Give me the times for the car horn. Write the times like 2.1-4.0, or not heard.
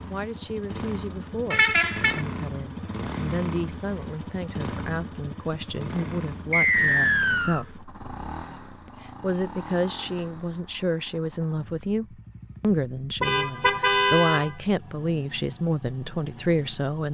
1.5-2.2, 13.2-14.6.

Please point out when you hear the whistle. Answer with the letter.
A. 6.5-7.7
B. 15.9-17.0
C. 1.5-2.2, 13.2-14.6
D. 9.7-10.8
A.